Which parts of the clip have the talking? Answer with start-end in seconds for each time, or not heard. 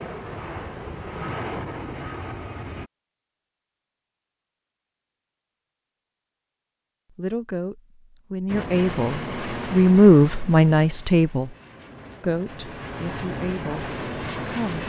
7.1-11.6, 12.2-14.8.